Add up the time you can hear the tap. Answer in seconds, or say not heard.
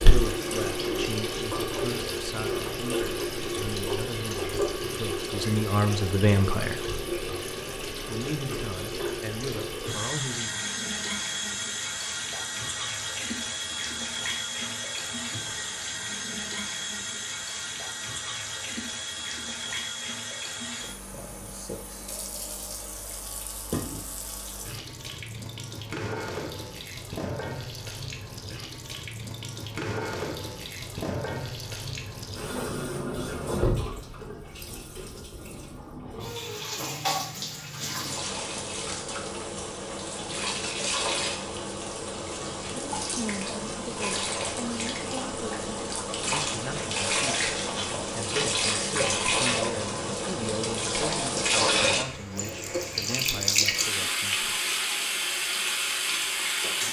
57 s.